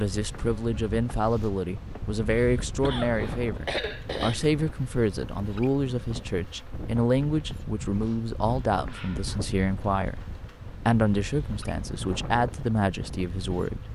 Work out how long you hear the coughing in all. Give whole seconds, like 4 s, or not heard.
2 s.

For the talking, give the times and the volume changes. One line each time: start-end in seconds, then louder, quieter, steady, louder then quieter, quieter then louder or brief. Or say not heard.
0.0-13.8 steady.